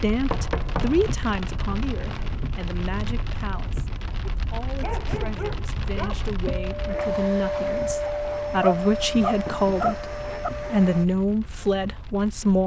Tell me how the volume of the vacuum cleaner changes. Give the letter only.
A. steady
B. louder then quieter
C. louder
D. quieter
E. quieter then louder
D.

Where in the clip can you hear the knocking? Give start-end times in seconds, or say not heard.
0.2-1.1, 9.4-10.1.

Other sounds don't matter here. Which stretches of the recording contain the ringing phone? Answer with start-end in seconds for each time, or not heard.
not heard.